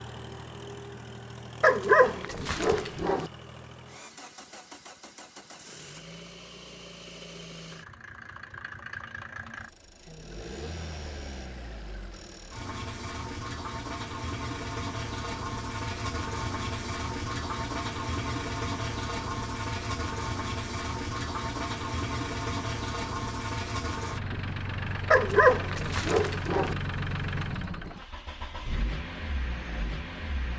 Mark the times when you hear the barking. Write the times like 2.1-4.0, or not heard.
1.6-3.3, 25.1-26.8.